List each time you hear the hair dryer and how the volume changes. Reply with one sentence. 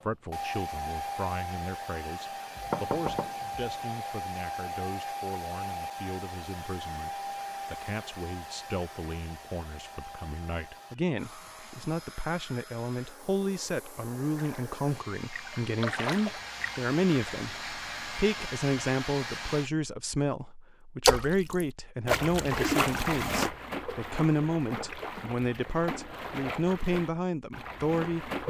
The hair dryer can be heard from 0.0 to 19.7 s, getting quieter then louder.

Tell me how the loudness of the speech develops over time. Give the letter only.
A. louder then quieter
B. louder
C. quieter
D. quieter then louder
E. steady
B.